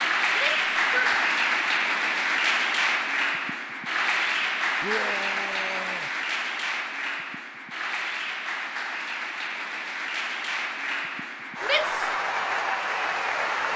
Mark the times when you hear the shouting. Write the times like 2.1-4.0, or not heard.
0.3-1.1, 4.8-6.1, 11.6-12.1.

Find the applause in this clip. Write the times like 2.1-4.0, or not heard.
0.0-13.7.